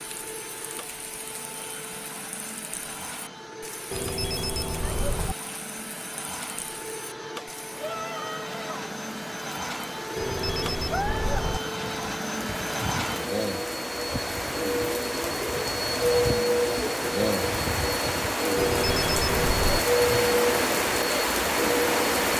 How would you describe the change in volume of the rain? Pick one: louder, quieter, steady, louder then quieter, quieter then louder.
louder.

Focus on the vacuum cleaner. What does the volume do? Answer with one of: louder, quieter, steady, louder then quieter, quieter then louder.
louder.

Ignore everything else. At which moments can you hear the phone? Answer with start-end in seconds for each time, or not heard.
3.9-5.3, 10.2-11.6, 18.6-19.9.